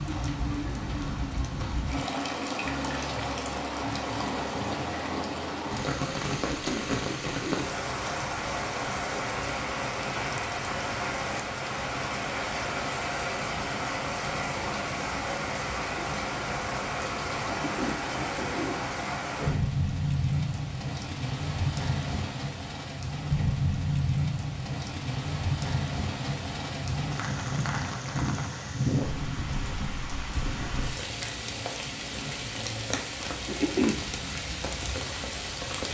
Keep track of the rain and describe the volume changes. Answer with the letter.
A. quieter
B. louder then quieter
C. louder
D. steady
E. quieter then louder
D.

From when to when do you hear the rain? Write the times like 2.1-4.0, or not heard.
0.0-35.8.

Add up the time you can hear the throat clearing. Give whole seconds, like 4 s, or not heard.
4 s.